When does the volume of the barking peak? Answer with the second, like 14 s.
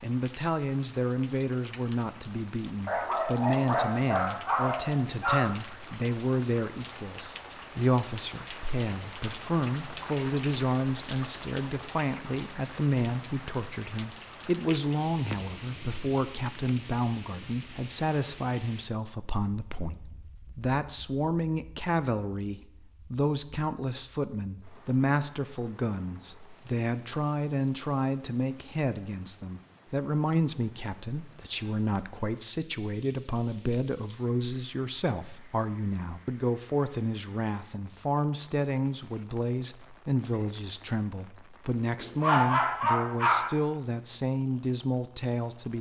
42 s.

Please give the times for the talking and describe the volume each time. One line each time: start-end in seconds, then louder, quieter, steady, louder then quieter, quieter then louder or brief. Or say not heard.
0.0-45.7 steady.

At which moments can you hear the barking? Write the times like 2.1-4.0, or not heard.
2.9-5.5, 42.0-43.5.